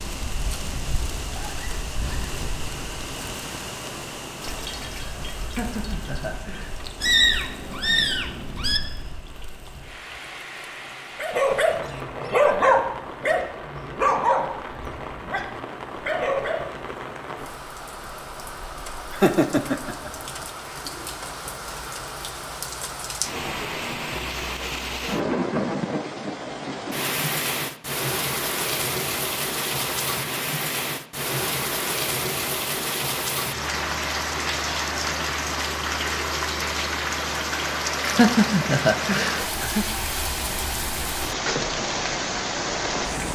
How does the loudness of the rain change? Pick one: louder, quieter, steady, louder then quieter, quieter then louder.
louder.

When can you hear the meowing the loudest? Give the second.
7 s.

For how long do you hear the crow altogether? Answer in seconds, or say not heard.
not heard.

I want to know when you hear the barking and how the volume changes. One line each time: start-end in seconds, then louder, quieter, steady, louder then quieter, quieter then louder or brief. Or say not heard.
11.2-16.8 quieter then louder.